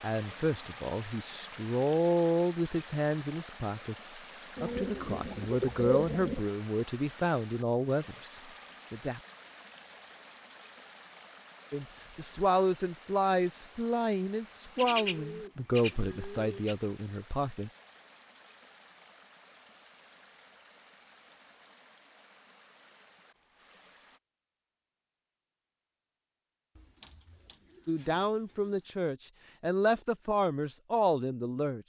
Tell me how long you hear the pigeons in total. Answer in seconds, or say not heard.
6 s.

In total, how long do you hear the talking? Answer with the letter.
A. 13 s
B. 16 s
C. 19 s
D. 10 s
C.